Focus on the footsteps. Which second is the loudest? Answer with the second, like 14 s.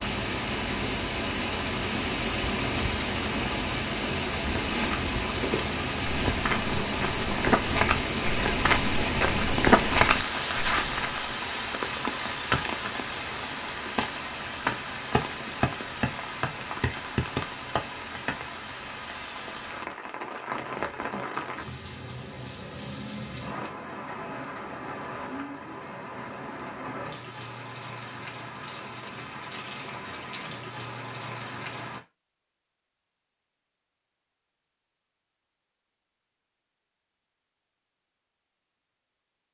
10 s.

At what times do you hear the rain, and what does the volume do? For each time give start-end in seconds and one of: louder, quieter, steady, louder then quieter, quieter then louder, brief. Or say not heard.
0.0-32.0 quieter.